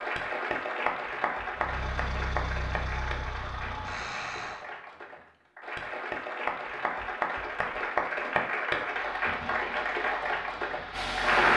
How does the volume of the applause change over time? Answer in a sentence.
The loudness of the applause goes down, then up.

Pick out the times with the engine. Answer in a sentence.
The engine can be heard from 1.5 to 4.7 s and from 8.9 to 11.5 s.